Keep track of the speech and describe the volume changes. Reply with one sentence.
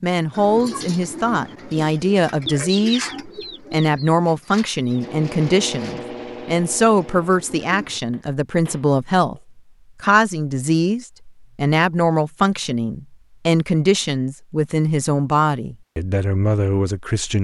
The loudness of the speech stays about the same.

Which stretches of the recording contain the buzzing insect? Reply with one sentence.
The buzzing insect can't be heard in this clip.